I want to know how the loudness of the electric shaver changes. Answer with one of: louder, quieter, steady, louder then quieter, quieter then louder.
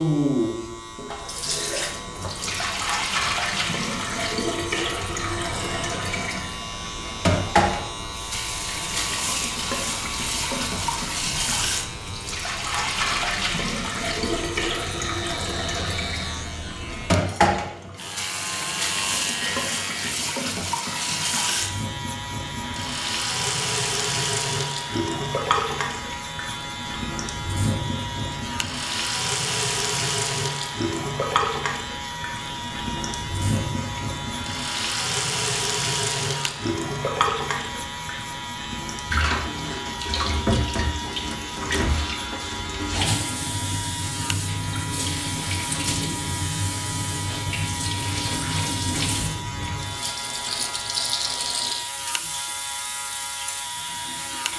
steady.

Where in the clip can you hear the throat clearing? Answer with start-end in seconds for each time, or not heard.
not heard.